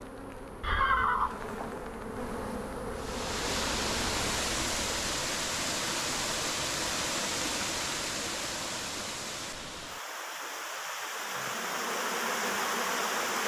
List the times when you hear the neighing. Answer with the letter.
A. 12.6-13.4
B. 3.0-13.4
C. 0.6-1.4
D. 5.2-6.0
C.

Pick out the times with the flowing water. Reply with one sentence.
The flowing water can be heard from 3.0 to 13.4 s.